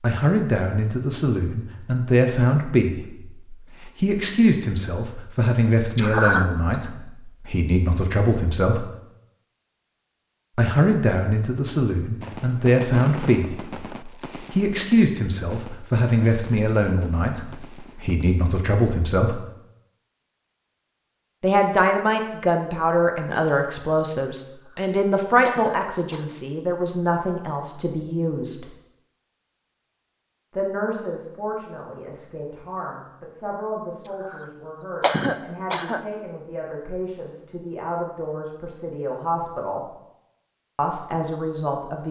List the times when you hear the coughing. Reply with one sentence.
The coughing can be heard from 6.0 to 6.8 s, from 24.4 to 26.4 s and from 34.0 to 36.0 s.